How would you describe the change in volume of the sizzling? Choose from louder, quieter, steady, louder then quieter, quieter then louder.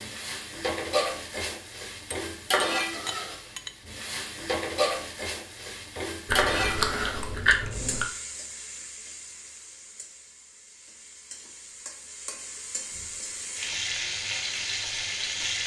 quieter then louder.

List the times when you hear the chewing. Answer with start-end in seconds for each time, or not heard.
6.2-8.1.